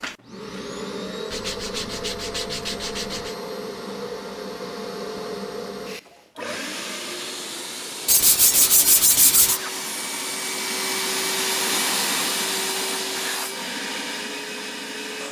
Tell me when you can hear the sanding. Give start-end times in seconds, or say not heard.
1.3-3.4, 8.1-9.6.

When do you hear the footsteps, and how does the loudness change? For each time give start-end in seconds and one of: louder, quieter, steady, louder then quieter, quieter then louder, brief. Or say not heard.
not heard.